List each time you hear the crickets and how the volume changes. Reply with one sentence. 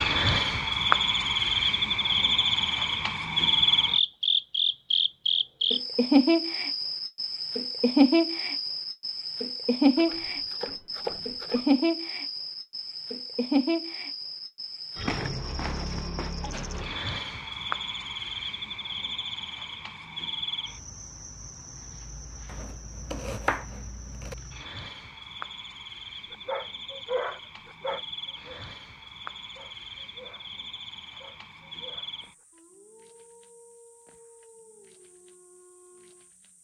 You can hear the crickets from 0.0 to 36.6 s, getting quieter.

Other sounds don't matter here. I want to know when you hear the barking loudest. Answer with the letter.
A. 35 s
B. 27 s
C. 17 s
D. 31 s
B.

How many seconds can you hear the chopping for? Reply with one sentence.
You can hear the chopping for 4 seconds altogether.